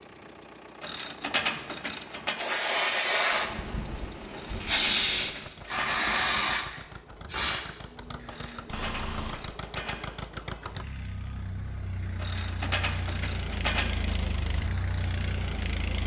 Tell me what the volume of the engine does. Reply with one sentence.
The loudness of the engine goes up.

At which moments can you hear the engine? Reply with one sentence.
The engine can be heard from 0.0 to 16.0 s.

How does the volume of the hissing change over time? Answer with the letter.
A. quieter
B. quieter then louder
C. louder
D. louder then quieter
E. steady
A.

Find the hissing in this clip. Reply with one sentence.
The hissing can be heard from 2.4 to 9.4 s.